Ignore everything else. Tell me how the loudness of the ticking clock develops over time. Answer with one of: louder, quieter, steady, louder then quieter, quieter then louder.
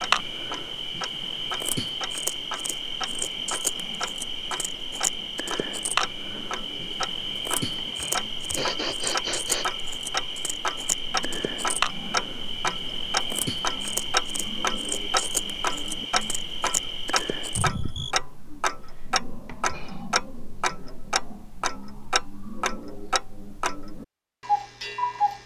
louder.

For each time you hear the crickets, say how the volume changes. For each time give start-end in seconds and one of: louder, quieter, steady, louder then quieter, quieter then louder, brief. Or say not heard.
0.0-18.1 steady.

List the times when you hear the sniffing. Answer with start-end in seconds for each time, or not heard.
7.8-9.7, 19.4-20.1.